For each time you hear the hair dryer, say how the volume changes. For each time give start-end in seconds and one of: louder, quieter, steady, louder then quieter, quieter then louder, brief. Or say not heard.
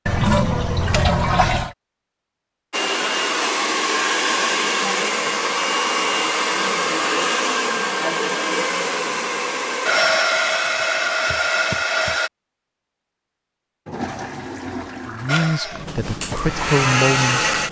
2.7-12.3 steady
15.2-17.6 brief.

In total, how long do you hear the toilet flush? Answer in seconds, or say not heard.
3 s.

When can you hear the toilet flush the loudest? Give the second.
1 s.